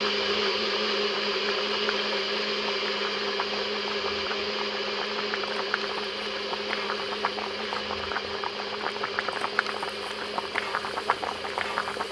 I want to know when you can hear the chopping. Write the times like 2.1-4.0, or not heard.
not heard.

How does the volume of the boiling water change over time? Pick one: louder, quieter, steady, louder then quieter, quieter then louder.
louder.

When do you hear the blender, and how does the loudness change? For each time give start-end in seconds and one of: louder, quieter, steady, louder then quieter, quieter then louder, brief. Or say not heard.
0.0-12.0 quieter.